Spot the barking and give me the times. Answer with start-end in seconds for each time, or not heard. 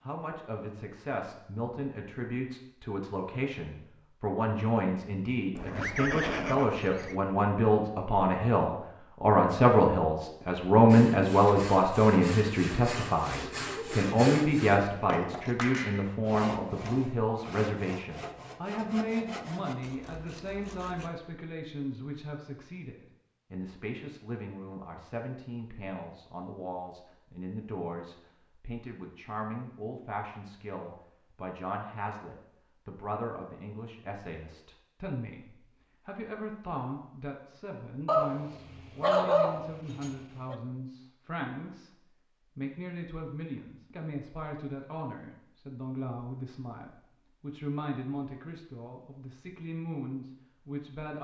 38.0-40.5.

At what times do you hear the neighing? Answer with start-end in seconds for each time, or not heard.
5.5-7.2.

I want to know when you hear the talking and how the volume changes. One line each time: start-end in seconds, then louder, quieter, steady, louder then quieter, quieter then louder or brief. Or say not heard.
0.0-51.2 quieter.